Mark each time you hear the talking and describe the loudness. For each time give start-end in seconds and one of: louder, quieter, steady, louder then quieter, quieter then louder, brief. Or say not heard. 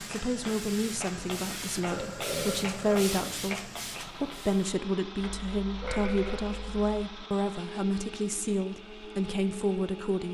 0.0-10.2 steady.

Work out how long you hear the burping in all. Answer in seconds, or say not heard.
3 s.